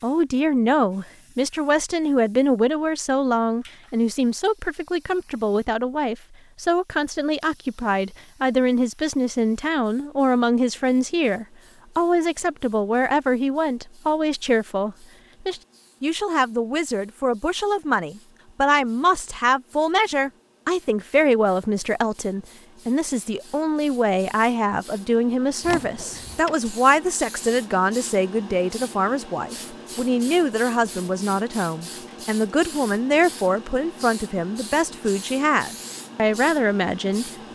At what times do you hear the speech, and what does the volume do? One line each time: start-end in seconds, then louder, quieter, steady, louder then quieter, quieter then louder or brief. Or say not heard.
0.0-37.5 steady.